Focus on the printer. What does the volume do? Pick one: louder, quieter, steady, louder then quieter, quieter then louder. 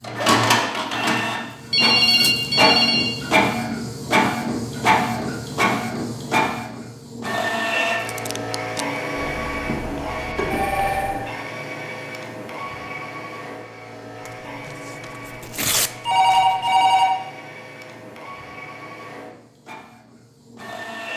quieter.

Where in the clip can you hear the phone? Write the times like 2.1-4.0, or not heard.
1.7-3.1, 9.2-11.2, 16.1-17.1.